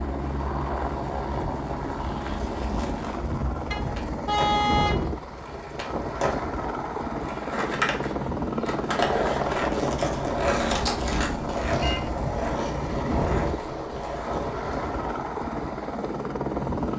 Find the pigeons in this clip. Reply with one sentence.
You can't hear the pigeons here.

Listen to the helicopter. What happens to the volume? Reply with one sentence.
The volume of the helicopter stays about the same.